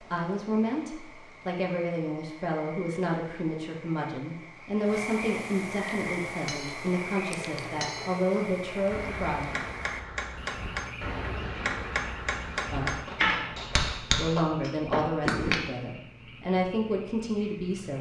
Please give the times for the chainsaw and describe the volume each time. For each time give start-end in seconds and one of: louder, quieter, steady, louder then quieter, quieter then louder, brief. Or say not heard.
not heard.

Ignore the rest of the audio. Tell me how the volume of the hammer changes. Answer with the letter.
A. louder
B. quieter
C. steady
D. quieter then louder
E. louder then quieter
A.